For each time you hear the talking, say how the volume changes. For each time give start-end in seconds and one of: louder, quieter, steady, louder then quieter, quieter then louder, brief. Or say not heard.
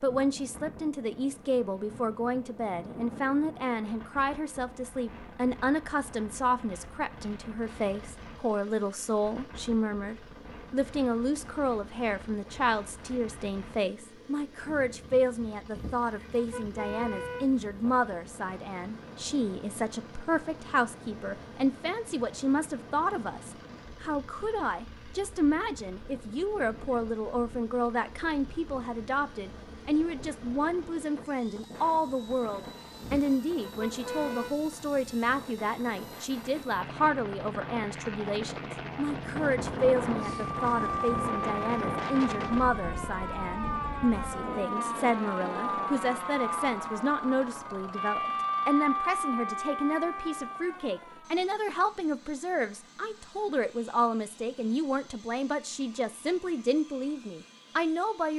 0.0-58.3 steady.